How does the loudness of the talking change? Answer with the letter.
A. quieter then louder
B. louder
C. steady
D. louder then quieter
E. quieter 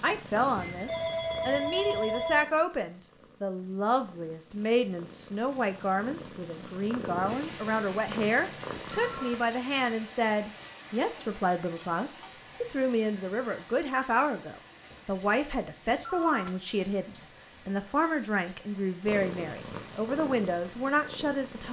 C.